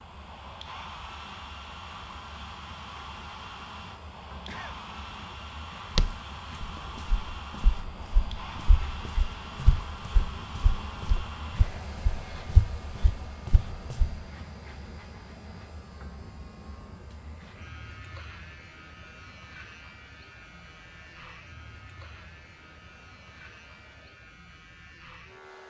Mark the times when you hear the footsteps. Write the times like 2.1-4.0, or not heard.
6.0-14.2.